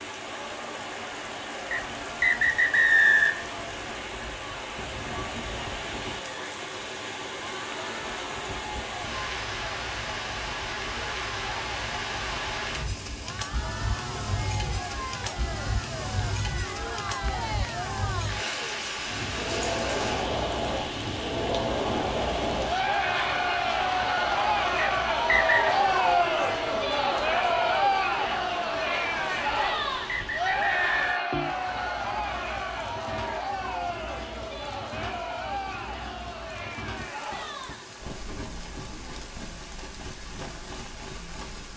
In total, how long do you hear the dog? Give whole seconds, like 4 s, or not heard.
not heard.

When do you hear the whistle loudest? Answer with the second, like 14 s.
3 s.